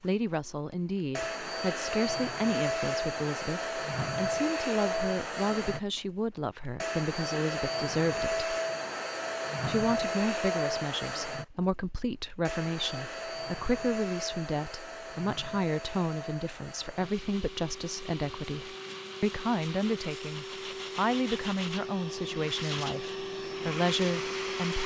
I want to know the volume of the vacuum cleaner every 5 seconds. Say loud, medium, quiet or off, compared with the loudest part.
loud, loud, loud, medium, loud.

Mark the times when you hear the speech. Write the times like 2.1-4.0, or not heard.
0.0-8.5, 9.7-24.8.